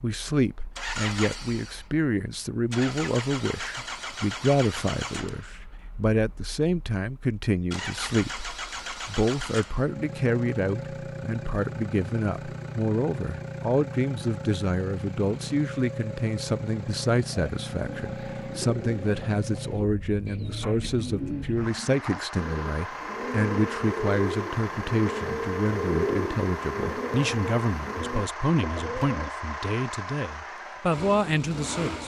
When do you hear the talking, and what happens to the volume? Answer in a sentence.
The talking can be heard from 0.0 to 32.0 s, at a steady volume.